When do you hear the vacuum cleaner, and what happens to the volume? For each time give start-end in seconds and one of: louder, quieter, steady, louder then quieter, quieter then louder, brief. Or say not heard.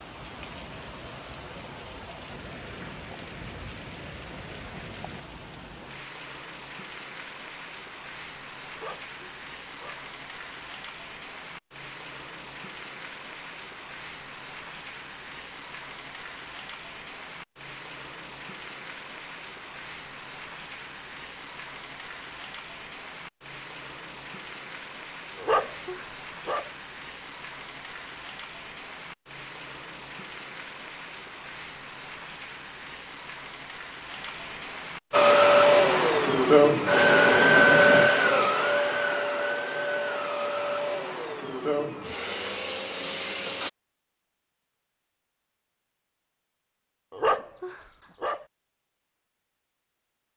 35.1-43.7 quieter.